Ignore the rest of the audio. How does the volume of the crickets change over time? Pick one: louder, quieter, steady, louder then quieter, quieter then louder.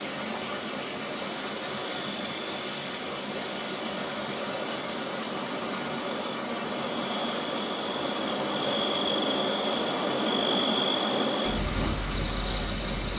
louder.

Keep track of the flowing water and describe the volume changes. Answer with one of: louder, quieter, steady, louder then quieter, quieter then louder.
steady.